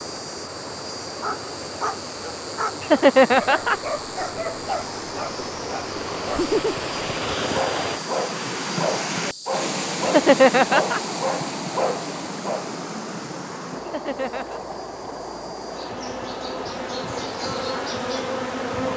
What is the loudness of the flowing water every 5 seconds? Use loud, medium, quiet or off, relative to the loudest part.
medium, loud, loud, medium.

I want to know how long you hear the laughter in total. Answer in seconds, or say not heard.
3 s.